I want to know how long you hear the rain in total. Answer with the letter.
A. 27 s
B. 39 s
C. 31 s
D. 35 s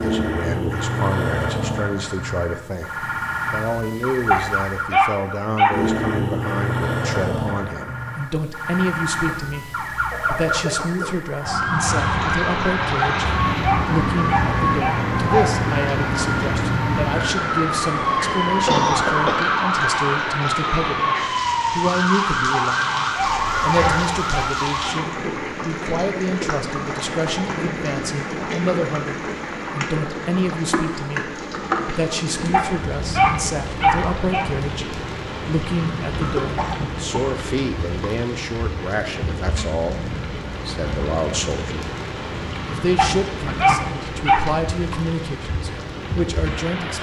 D.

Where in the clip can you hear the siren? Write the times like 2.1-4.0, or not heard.
0.0-25.2.